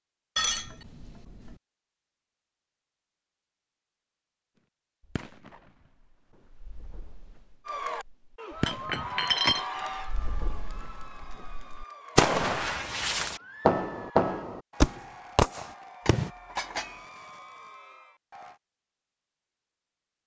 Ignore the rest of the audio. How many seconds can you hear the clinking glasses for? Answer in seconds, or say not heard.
3 s.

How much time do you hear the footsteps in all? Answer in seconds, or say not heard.
not heard.